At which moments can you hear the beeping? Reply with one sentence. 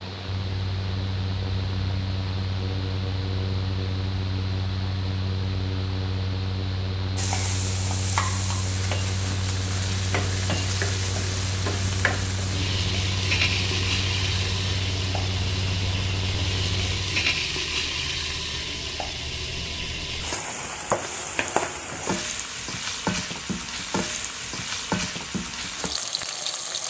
The beeping can't be heard in this clip.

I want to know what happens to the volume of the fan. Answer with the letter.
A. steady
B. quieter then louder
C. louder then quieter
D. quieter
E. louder
A.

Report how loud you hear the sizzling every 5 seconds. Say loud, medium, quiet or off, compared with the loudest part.
off, loud, loud, loud, loud, loud.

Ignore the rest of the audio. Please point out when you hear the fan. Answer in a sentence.
The fan can be heard from 0.0 to 17.4 s.